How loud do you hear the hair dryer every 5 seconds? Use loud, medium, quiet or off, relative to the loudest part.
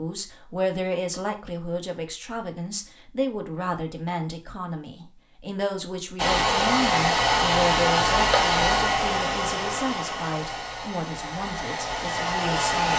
off, loud, medium.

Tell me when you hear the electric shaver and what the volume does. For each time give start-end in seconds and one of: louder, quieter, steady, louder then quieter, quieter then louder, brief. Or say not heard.
not heard.